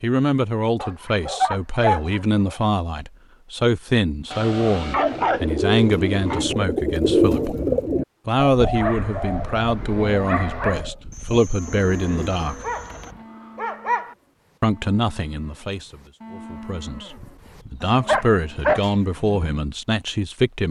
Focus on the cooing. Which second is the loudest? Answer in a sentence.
The volume of the cooing peaks at 7 seconds.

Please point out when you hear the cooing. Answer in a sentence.
You can hear the cooing from 4.8 to 13.2 s.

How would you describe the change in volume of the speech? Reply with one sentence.
The volume of the speech stays about the same.